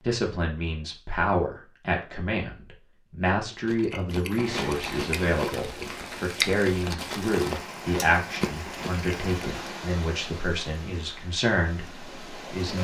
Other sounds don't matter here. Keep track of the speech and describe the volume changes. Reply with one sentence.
The loudness of the speech stays about the same.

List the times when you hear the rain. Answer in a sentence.
The rain can be heard from 4.3 to 12.8 s.